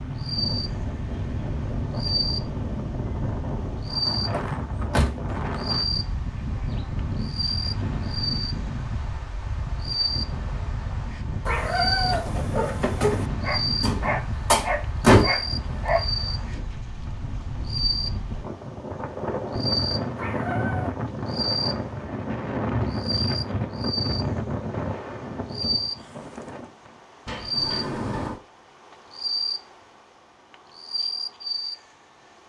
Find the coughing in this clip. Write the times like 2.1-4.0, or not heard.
not heard.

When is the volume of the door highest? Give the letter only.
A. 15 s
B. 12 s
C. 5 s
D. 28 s
A.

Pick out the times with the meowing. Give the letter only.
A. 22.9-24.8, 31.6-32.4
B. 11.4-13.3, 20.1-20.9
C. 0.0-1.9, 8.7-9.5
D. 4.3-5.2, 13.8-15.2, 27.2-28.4
B.